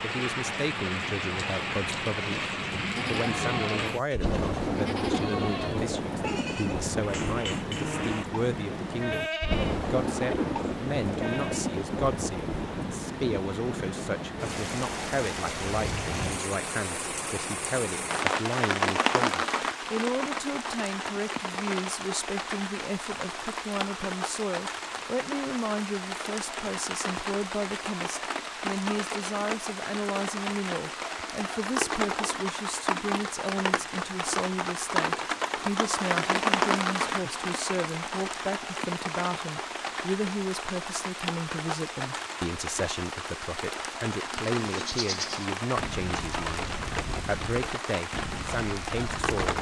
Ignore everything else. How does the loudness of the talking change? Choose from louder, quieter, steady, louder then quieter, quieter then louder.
steady.